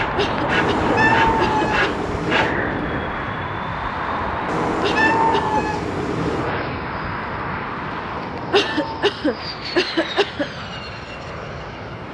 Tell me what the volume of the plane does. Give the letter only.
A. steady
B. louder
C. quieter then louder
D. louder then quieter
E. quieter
E.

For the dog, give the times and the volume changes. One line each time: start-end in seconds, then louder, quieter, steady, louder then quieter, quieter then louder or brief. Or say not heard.
not heard.